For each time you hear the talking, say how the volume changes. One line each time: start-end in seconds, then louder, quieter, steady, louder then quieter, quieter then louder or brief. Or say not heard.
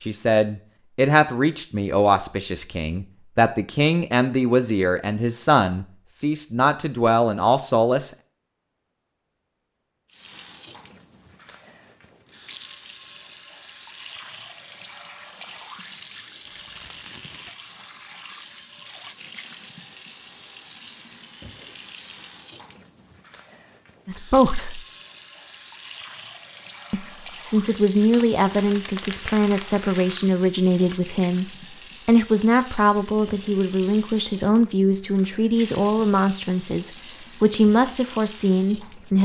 0.0-8.1 steady
24.1-24.8 brief
26.9-39.2 steady.